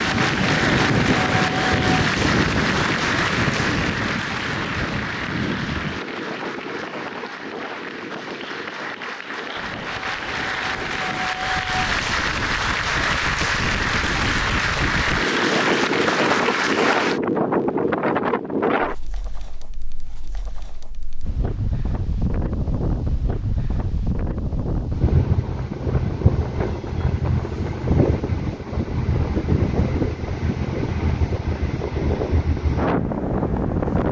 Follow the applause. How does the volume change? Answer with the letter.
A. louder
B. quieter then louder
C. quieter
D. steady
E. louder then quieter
B.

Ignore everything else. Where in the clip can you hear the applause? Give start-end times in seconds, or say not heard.
0.0-17.2.